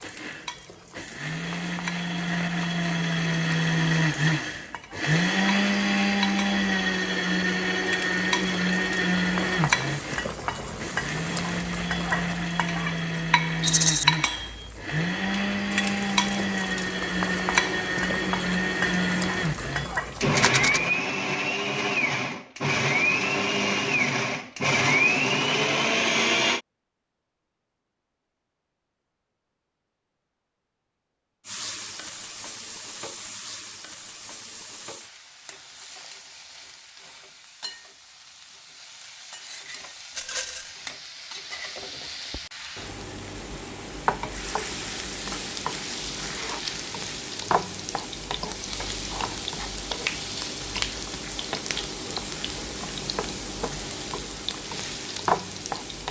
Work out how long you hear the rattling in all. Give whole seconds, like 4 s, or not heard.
2 s.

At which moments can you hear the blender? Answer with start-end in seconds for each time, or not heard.
0.0-26.6.